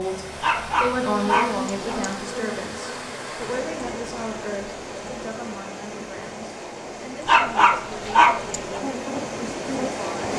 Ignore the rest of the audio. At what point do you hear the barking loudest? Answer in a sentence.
The volume of the barking peaks at 8 seconds.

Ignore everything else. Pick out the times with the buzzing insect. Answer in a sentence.
You can hear the buzzing insect from 0.0 to 3.1 s and from 8.8 to 10.1 s.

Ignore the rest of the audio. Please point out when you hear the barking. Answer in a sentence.
You can hear the barking from 0.4 to 2.1 s and from 7.2 to 8.8 s.